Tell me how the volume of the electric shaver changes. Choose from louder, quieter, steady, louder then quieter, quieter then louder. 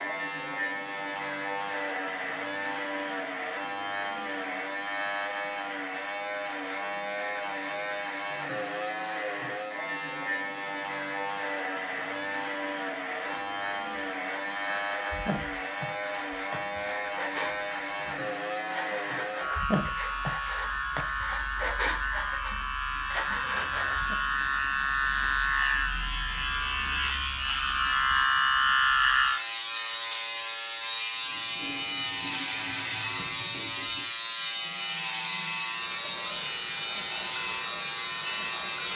louder.